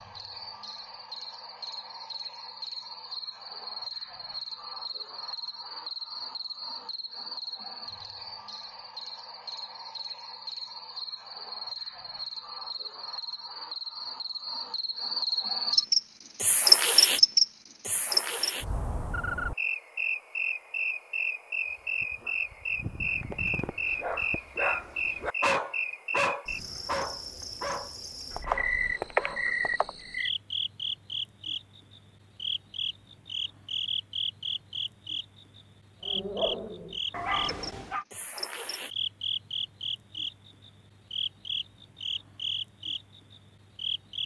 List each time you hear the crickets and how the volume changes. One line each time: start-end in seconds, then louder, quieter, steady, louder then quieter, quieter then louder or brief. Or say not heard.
0.0-44.2 louder then quieter.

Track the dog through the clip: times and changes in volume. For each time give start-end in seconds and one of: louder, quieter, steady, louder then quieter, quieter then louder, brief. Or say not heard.
21.7-29.5 louder then quieter
36.0-38.0 brief.